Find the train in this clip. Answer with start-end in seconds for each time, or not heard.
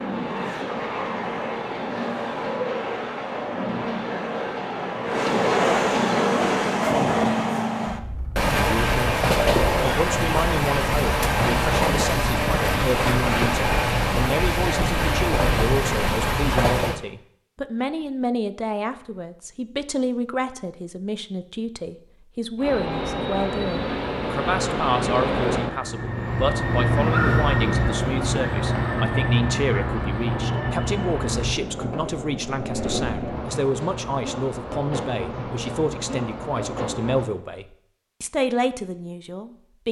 0.0-17.0, 22.6-37.3.